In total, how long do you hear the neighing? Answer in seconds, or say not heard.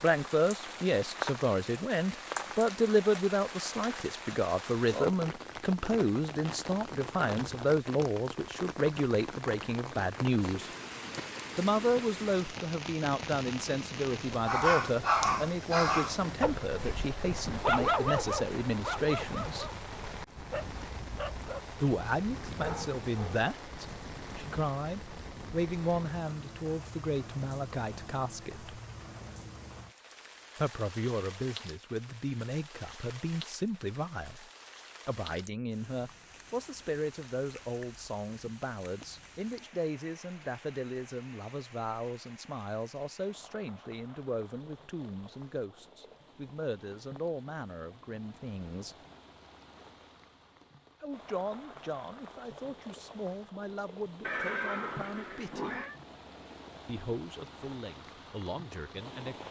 2 s.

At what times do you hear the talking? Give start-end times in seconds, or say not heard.
0.0-10.7, 11.6-19.7, 21.8-28.8, 30.6-49.0, 51.0-55.8, 56.9-59.4.